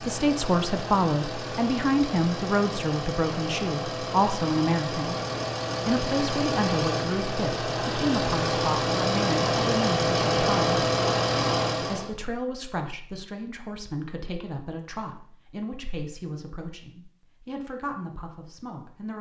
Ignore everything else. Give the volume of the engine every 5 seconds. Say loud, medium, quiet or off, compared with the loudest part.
medium, loud, loud, off.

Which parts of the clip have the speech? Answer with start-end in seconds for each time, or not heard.
0.0-5.2, 5.8-10.8, 11.8-19.1.